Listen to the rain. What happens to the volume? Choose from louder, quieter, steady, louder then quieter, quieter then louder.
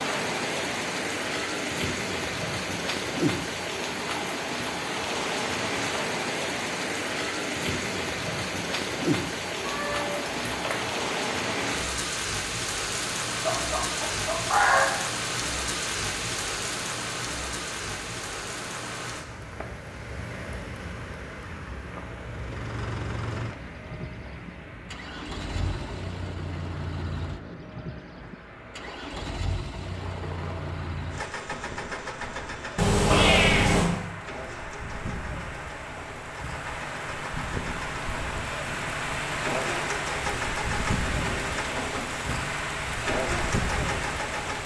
quieter then louder.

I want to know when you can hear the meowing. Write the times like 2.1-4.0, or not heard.
9.7-11.0, 32.8-33.9.